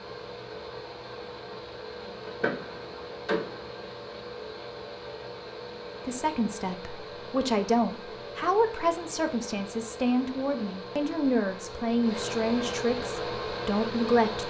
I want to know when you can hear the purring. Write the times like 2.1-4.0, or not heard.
not heard.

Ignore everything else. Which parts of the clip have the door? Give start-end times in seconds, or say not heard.
2.2-3.6.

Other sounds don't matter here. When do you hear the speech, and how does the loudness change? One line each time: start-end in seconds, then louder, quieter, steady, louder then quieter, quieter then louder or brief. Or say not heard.
6.0-14.4 steady.